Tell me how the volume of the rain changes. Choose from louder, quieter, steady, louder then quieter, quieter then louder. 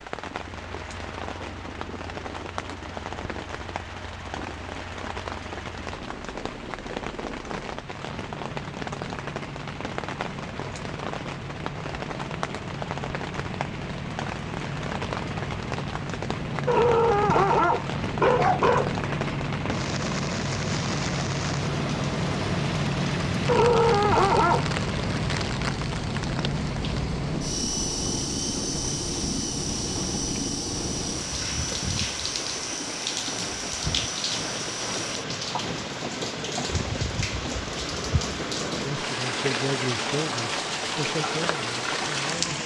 louder.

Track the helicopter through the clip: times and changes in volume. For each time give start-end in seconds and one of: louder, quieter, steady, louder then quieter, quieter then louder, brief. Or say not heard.
0.2-42.6 louder then quieter.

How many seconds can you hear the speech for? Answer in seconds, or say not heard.
4 s.